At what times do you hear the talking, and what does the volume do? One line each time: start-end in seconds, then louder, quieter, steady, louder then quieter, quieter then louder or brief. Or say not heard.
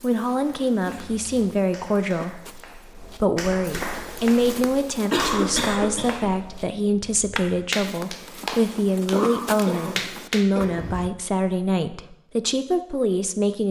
0.0-13.6 steady.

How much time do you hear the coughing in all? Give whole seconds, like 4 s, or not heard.
4 s.